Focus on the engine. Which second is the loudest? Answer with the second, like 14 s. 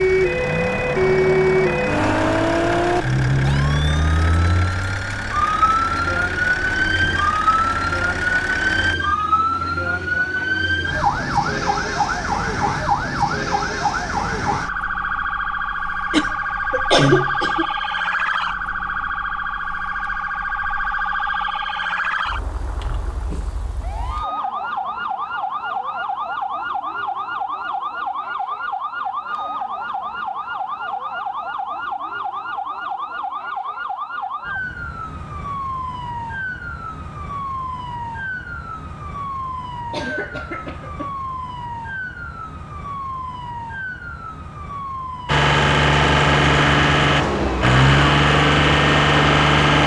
48 s.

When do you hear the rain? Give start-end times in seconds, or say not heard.
not heard.